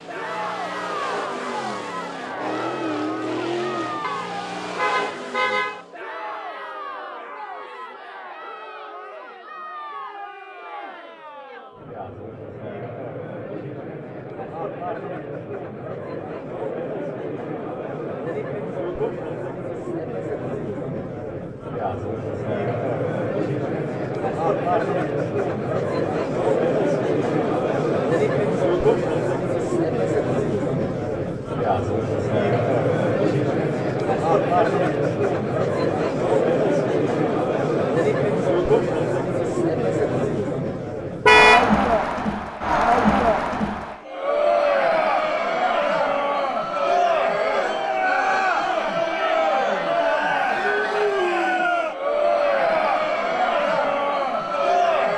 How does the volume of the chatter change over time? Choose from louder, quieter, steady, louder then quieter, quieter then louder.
louder.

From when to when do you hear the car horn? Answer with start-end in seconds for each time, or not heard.
4.0-5.8, 41.2-41.7.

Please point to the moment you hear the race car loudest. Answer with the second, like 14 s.
3 s.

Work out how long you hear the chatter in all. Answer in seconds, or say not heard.
55 s.